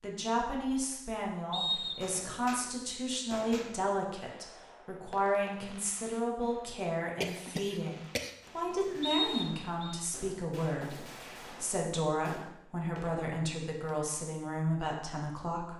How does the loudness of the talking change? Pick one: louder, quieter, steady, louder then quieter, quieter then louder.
steady.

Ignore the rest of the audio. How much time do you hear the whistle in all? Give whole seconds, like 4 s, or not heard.
2 s.